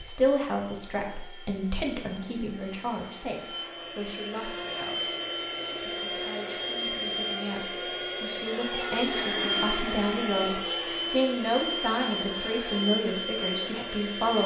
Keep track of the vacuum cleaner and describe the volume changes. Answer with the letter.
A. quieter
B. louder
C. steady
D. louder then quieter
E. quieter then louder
B.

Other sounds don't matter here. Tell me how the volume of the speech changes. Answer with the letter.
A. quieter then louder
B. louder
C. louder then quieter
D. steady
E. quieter
A.